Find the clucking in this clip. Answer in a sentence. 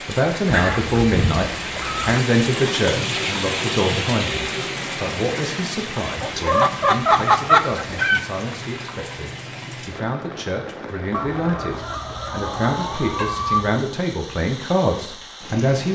The clucking can be heard from 0.5 to 2.1 s, from 6.2 to 8.2 s and from 11.1 to 13.8 s.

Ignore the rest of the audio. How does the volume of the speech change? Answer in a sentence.
The volume of the speech goes down, then up.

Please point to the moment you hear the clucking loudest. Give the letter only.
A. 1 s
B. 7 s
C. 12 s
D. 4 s
B.